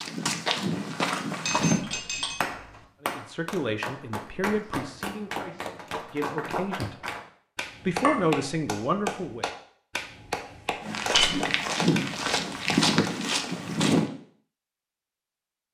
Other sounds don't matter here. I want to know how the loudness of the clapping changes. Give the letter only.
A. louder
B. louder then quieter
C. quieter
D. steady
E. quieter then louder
D.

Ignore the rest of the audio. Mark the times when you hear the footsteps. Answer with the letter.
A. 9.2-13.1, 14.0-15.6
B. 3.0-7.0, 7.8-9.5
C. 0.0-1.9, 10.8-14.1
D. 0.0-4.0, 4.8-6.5
C.